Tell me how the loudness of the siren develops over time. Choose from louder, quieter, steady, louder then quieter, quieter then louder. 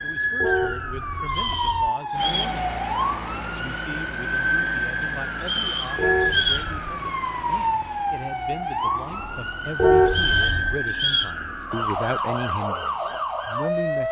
steady.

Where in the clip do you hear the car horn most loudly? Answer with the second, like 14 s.
10 s.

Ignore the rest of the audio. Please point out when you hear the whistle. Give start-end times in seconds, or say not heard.
1.2-2.6, 5.4-6.7, 10.1-11.3.